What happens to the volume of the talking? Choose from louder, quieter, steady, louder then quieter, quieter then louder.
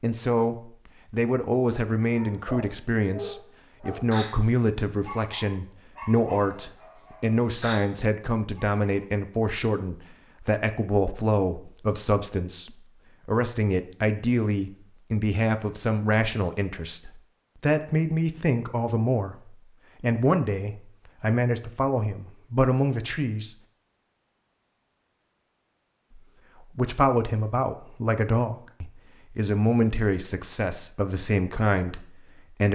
steady.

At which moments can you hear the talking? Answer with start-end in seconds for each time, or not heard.
0.0-23.6, 26.1-32.7.